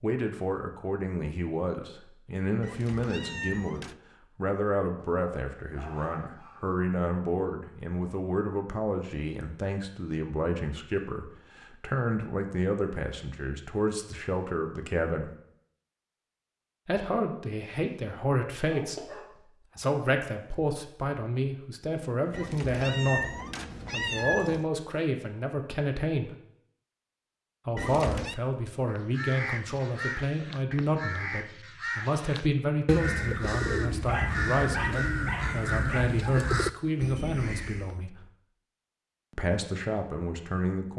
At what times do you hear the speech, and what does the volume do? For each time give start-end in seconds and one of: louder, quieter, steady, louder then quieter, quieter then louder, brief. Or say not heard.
0.0-15.3 steady
16.9-26.4 steady
27.6-38.2 steady
39.3-40.9 brief.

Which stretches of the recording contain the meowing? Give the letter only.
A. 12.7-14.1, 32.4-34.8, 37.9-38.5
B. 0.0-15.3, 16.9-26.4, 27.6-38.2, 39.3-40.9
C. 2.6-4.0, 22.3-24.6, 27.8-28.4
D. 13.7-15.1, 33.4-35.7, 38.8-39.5
C.